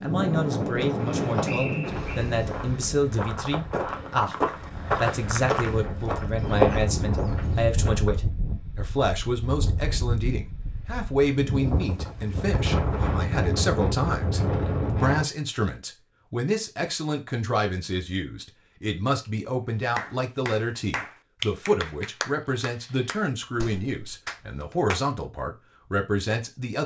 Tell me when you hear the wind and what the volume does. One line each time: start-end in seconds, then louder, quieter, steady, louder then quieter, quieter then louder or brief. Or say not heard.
0.0-15.2 quieter then louder.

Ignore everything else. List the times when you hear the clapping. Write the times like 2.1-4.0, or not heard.
19.9-25.0.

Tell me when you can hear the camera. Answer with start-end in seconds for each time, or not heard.
not heard.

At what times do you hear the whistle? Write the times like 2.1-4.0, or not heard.
1.4-2.2.